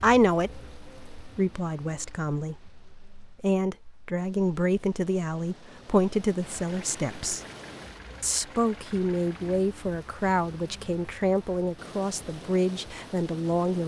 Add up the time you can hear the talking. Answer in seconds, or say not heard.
13 s.